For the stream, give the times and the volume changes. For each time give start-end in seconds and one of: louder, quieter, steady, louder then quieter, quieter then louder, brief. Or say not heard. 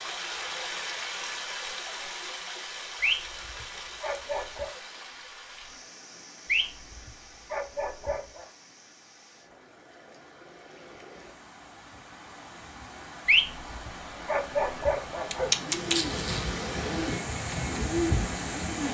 0.0-18.8 quieter then louder.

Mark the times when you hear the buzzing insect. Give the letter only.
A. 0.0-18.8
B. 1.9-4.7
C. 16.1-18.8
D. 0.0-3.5
C.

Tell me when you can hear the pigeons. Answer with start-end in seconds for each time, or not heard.
15.3-18.8.